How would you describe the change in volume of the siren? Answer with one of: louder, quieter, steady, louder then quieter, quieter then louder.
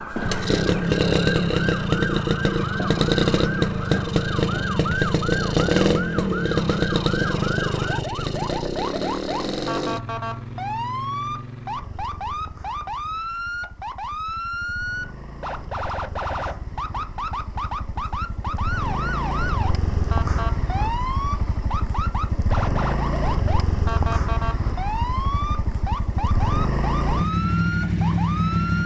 steady.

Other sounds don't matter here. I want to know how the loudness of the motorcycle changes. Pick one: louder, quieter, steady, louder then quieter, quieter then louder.
quieter then louder.